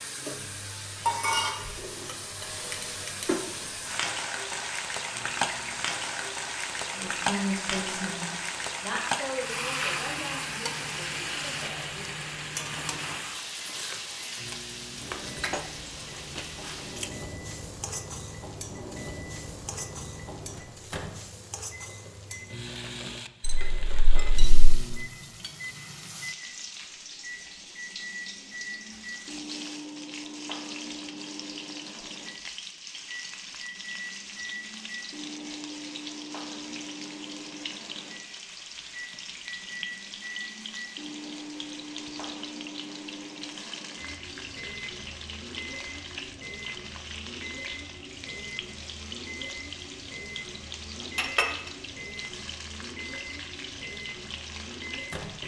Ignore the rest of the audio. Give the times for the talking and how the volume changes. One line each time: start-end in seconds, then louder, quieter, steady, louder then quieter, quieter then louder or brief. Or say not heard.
6.9-12.2 quieter.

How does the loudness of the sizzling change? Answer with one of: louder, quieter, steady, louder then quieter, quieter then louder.
quieter.